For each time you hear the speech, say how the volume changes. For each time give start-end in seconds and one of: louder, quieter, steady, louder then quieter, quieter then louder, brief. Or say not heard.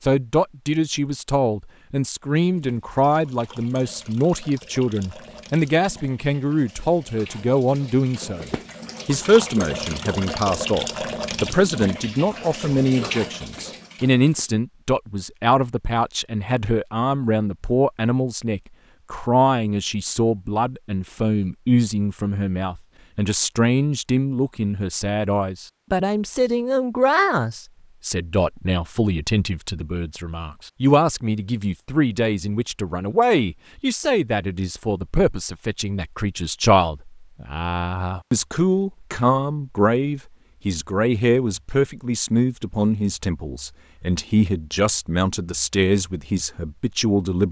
0.0-47.4 steady.